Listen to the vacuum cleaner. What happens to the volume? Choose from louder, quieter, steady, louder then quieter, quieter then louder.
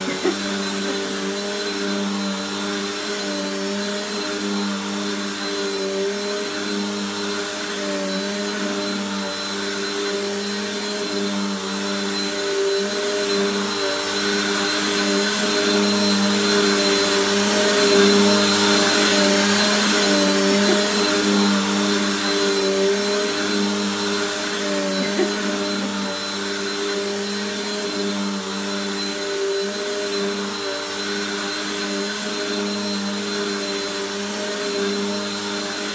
louder then quieter.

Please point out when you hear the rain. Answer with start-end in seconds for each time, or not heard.
not heard.